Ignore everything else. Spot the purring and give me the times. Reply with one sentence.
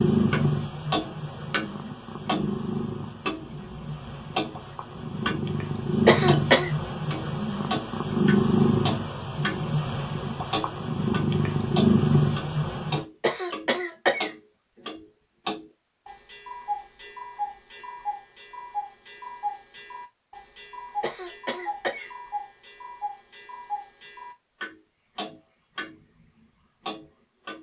The purring can be heard from 0.0 to 13.1 s.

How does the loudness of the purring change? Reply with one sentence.
The loudness of the purring goes down, then up.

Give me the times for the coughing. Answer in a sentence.
You can hear the coughing from 6.0 to 6.7 s, from 13.2 to 14.3 s and from 21.0 to 22.1 s.